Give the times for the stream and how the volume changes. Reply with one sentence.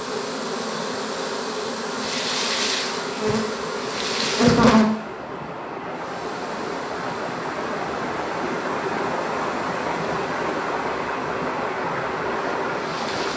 You can hear the stream from 0.0 to 13.3 s, getting louder.